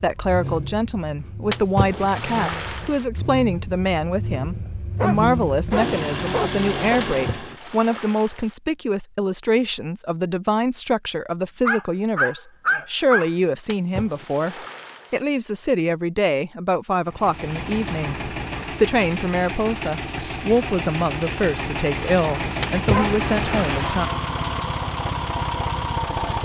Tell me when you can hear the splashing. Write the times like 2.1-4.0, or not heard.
1.5-3.0, 7.0-8.6, 13.7-15.2, 22.6-24.1.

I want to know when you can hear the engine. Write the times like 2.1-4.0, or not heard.
0.0-7.6, 17.1-26.3.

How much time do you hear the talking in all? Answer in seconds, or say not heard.
24 s.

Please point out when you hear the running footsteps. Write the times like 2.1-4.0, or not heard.
not heard.